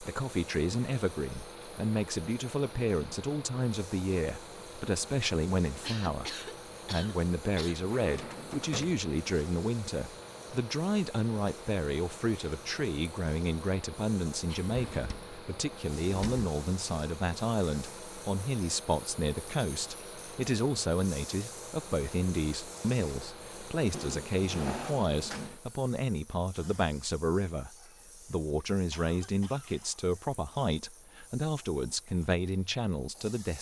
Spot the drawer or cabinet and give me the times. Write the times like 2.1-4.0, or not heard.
8.0-9.1, 14.7-16.4, 23.9-25.6.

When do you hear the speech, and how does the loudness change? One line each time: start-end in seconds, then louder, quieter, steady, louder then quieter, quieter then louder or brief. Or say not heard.
0.0-33.5 steady.